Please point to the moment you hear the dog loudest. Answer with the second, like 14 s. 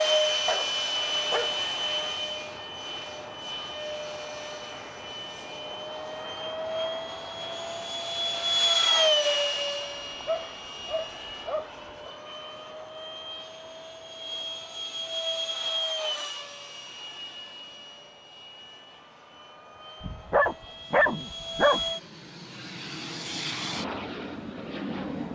21 s.